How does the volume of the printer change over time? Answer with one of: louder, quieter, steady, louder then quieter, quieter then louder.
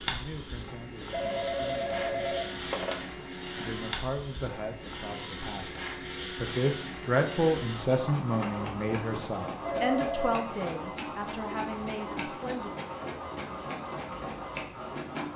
steady.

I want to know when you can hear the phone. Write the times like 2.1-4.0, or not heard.
1.1-3.0, 9.6-10.4.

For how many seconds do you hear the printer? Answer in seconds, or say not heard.
15 s.